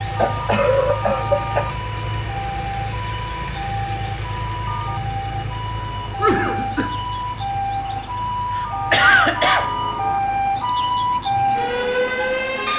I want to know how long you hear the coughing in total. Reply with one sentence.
You can hear the coughing for 3 seconds altogether.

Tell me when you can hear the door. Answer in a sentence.
The door can't be heard in this clip.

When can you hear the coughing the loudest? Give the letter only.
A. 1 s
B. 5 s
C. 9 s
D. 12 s
C.